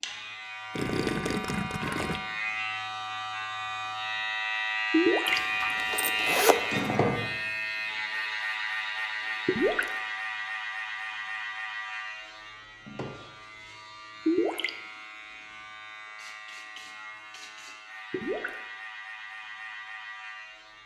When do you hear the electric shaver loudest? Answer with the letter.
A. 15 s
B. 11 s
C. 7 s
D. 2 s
C.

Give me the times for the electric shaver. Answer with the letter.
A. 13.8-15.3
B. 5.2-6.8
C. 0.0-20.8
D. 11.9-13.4
C.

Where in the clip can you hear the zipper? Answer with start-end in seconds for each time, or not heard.
5.2-6.8.